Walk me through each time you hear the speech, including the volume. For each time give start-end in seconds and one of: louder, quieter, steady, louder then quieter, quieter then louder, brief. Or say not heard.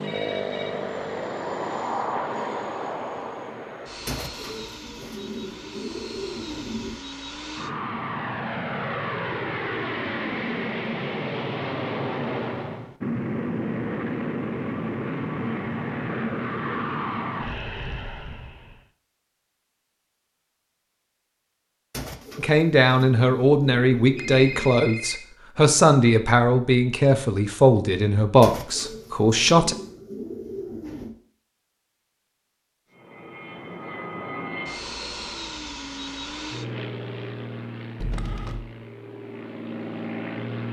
22.4-29.8 steady.